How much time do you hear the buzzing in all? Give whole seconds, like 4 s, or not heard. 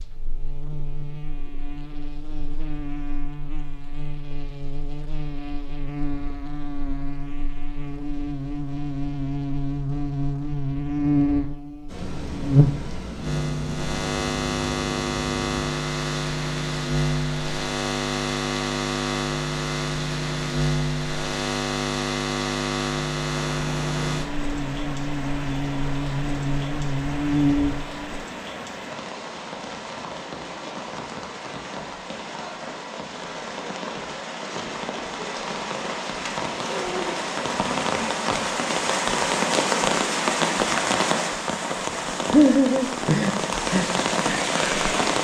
28 s.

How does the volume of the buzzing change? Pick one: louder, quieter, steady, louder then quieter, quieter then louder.
louder.